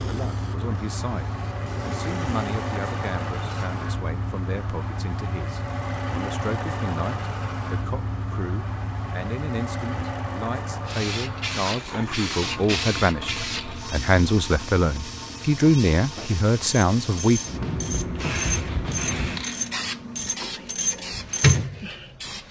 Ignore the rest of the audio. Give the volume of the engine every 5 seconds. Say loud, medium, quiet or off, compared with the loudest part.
loud, loud, loud, medium, quiet.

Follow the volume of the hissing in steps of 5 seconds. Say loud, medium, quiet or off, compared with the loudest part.
quiet, off, medium, medium, loud.